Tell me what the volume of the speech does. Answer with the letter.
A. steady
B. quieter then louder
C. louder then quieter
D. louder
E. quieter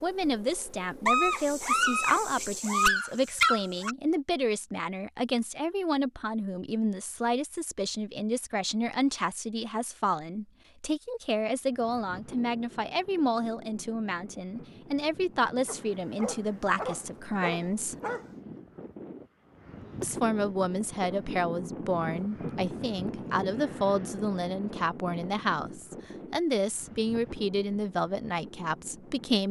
A.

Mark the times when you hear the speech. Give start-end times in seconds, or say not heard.
0.0-17.9, 20.0-29.4.